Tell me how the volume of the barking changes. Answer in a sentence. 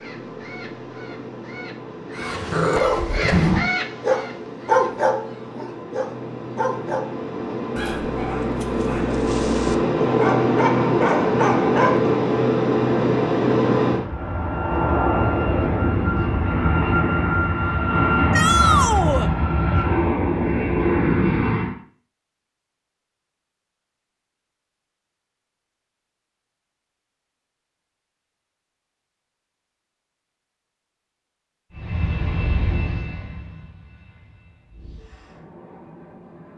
The volume of the barking goes down, then up.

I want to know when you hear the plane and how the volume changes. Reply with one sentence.
You can hear the plane from 0.0 to 21.8 s, getting louder; and from 31.7 to 36.5 s, getting quieter then louder.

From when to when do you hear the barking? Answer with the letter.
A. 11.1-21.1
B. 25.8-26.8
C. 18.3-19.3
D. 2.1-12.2
D.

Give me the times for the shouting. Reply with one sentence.
The shouting can be heard from 18.3 to 19.3 s.